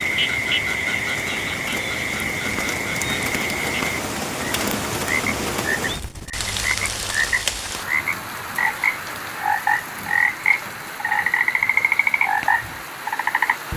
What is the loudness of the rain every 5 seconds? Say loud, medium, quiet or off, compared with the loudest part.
loud, loud, medium.